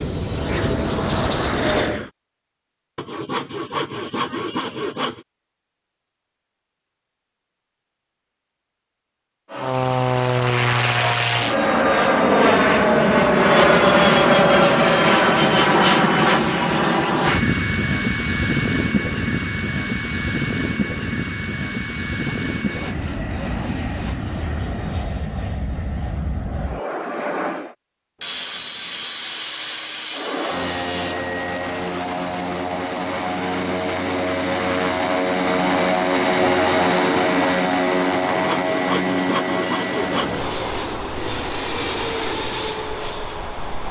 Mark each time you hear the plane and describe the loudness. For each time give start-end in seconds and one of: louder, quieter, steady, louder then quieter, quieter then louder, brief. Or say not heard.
0.0-2.1 brief
9.5-27.8 quieter
30.1-43.8 louder then quieter.